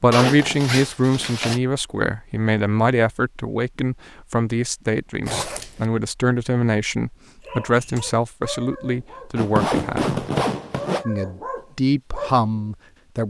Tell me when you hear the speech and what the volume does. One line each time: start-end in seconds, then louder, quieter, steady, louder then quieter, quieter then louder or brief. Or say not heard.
0.0-10.2 steady
11.1-13.2 brief.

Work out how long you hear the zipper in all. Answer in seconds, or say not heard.
4 s.